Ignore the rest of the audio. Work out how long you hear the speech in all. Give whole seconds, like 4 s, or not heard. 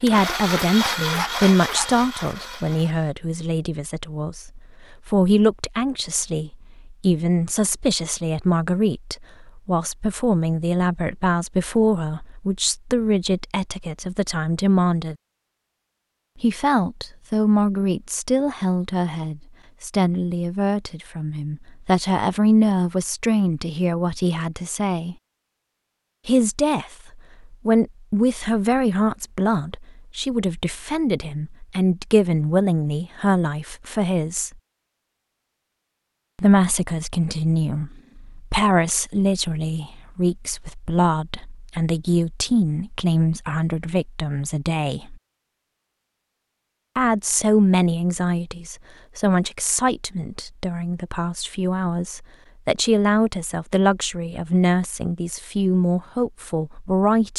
51 s.